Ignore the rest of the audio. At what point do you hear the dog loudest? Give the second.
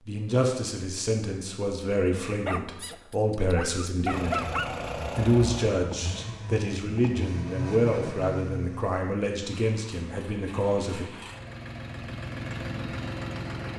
4 s.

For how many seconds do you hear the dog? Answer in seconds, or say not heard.
2 s.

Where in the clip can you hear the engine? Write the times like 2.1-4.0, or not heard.
4.0-13.7.